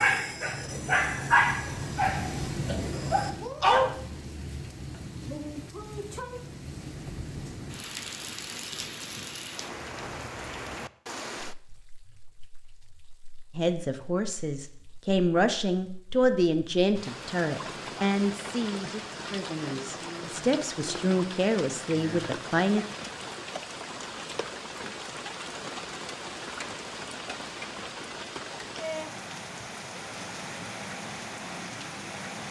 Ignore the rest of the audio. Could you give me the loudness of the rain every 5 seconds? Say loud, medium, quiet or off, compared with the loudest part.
loud, loud, medium, loud, loud, loud, loud.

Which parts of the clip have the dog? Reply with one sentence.
You can hear the dog from 0.0 to 4.0 s.